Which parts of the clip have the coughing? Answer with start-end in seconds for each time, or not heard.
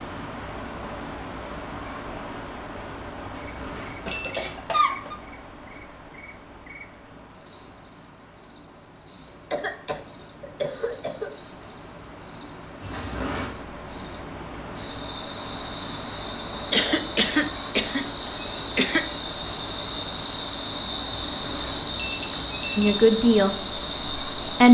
4.0-5.2, 9.5-11.3, 16.7-19.1.